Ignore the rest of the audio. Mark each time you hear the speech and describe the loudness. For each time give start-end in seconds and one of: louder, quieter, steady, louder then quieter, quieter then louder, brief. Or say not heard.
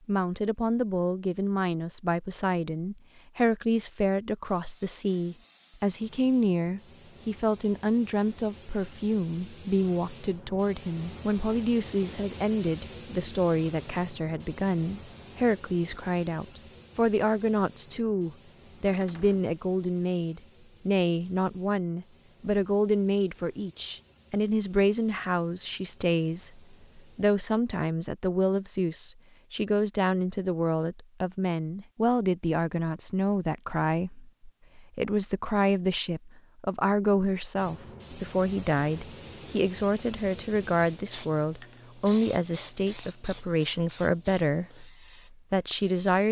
0.1-46.2 steady.